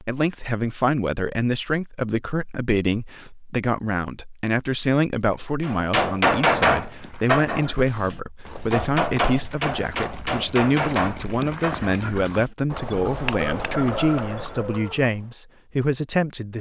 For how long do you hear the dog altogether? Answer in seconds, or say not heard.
not heard.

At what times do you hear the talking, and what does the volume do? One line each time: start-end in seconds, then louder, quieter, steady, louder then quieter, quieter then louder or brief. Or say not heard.
0.0-16.5 steady.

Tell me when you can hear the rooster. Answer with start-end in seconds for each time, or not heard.
13.4-15.0.